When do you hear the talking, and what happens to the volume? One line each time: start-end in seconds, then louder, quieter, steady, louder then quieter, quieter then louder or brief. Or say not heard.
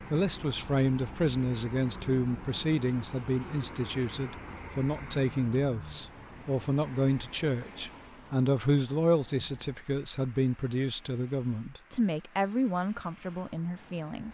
0.0-14.3 steady.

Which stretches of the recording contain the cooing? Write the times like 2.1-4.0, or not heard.
not heard.